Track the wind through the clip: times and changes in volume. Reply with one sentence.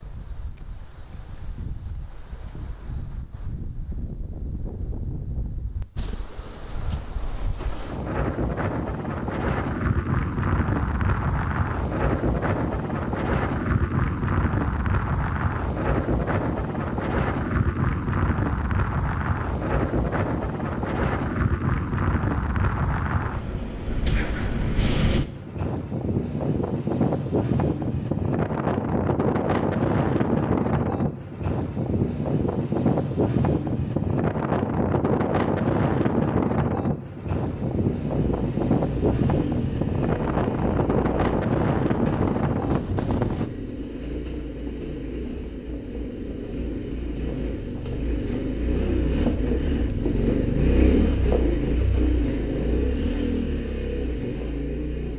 The wind can be heard from 0.0 to 43.5 s, getting louder.